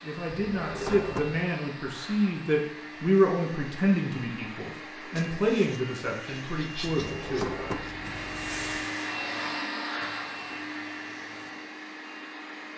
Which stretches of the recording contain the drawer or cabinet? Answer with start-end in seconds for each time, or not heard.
0.3-1.4, 7.0-8.8.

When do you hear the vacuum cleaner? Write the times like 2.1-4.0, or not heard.
0.0-12.7.